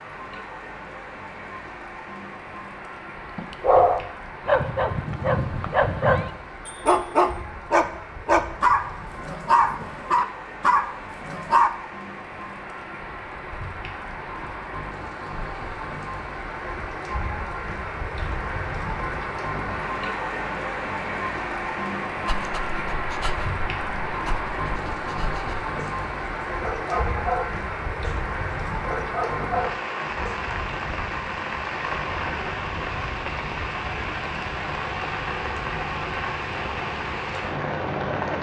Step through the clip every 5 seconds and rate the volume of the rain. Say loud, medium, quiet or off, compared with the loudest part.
medium, medium, medium, loud, loud, loud, loud, loud.